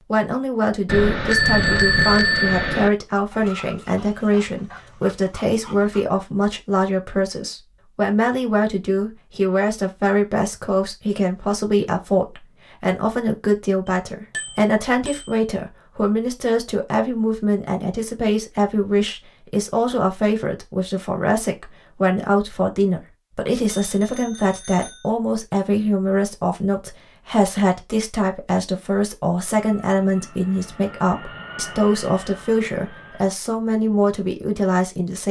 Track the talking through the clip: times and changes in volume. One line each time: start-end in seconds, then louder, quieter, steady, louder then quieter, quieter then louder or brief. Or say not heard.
0.1-35.2 steady.